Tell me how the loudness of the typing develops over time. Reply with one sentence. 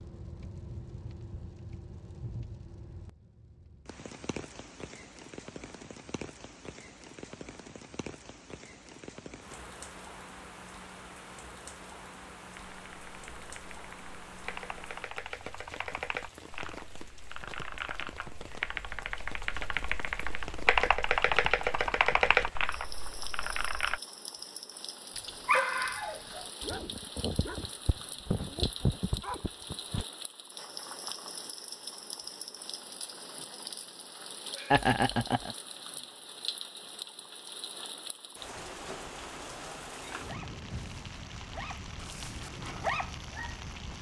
The loudness of the typing goes up.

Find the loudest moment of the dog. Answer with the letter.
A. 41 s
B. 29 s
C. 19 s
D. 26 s
D.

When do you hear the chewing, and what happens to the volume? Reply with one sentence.
You can't hear the chewing here.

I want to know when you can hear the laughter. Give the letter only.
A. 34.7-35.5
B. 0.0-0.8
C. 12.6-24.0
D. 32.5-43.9
A.